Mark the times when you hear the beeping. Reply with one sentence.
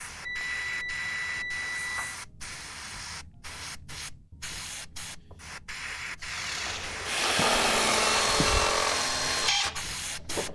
You can hear the beeping from 0.2 to 2.2 s and from 7.3 to 8.8 s.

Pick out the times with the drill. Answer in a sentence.
You can hear the drill from 6.2 to 10.5 s.